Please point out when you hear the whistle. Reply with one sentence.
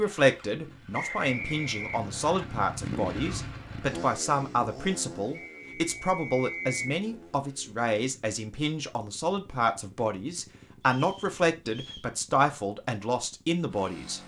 The whistle can be heard from 0.9 to 2.5 s, from 5.3 to 7.0 s and from 10.9 to 12.1 s.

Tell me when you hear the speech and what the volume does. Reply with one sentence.
The speech can be heard from 0.0 to 14.2 s, at a steady volume.